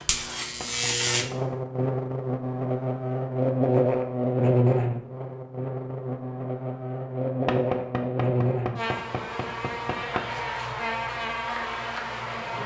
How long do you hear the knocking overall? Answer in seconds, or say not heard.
4 s.